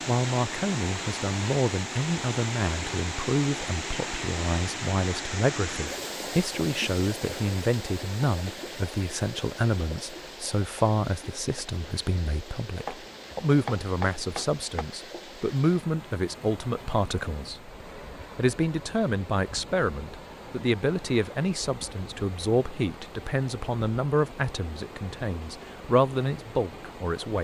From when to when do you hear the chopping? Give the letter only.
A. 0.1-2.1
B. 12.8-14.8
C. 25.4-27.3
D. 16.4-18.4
B.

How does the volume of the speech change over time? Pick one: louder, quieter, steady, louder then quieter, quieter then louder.
steady.